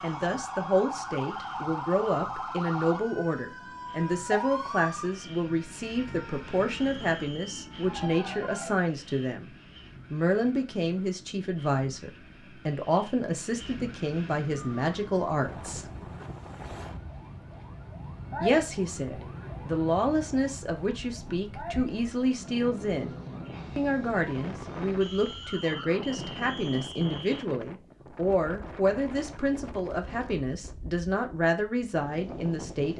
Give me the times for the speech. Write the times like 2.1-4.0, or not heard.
0.0-9.5, 10.1-15.8, 18.4-23.1, 23.8-32.9.